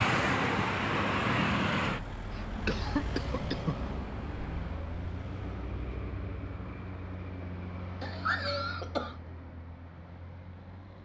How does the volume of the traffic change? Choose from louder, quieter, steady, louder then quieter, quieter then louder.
quieter.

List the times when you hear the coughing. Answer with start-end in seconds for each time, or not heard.
2.3-3.9, 8.0-9.2.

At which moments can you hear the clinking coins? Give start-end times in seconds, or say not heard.
not heard.